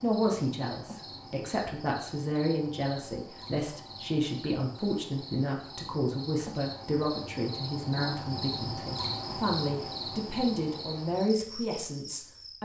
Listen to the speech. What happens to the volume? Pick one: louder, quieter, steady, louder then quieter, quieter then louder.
steady.